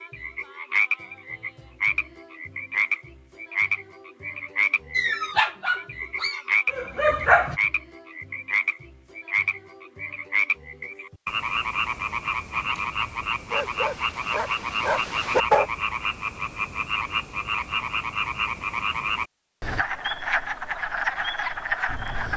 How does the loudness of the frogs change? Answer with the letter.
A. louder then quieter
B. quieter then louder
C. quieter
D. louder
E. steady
E.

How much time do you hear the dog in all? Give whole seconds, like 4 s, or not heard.
6 s.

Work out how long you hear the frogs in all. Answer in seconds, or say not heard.
22 s.